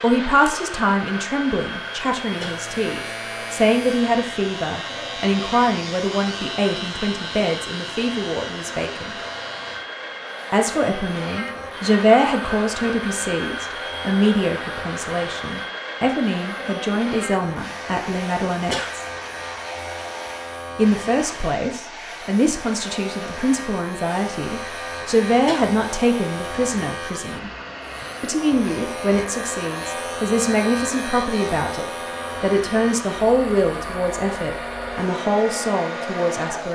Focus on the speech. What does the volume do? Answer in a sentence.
The volume of the speech stays about the same.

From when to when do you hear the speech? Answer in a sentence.
You can hear the speech from 0.0 to 9.2 s, from 10.5 to 19.1 s, from 20.8 to 27.5 s and from 28.2 to 36.7 s.